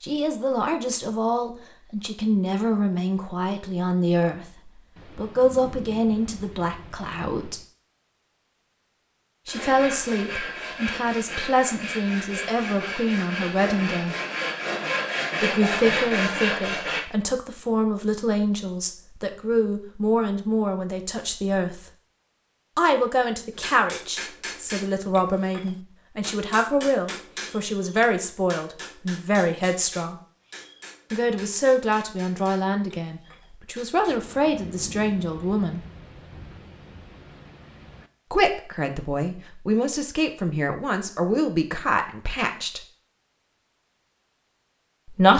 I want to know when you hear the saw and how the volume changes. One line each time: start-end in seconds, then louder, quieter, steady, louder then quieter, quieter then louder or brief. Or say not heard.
9.4-17.1 louder.